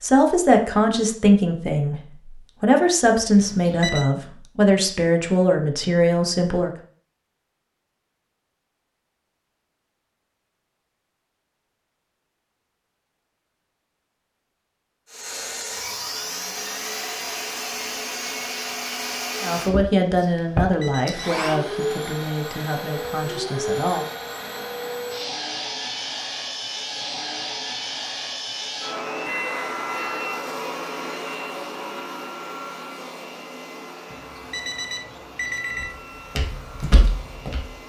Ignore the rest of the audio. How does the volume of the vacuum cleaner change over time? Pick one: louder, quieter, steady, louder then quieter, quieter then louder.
quieter.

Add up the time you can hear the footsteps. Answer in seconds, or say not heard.
2 s.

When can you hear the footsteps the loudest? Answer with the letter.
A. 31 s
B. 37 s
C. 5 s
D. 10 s
B.